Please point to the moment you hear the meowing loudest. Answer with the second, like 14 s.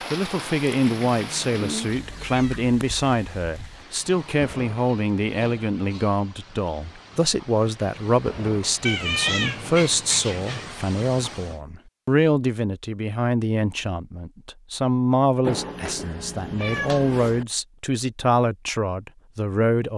9 s.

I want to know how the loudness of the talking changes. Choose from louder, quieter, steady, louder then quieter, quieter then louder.
steady.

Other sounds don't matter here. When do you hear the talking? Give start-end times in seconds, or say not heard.
0.1-19.9.